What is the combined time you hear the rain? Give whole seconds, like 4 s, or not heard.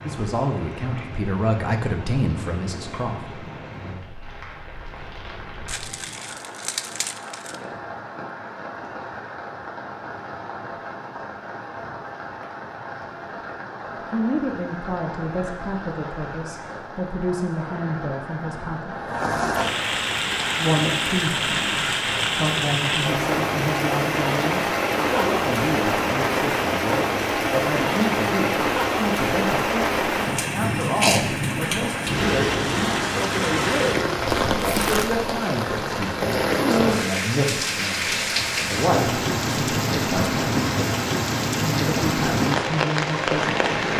44 s.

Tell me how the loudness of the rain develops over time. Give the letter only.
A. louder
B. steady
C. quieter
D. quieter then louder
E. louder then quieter
A.